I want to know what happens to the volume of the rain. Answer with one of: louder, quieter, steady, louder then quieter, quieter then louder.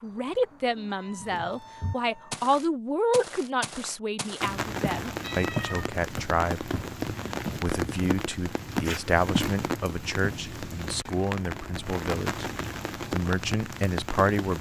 steady.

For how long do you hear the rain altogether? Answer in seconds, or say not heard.
10 s.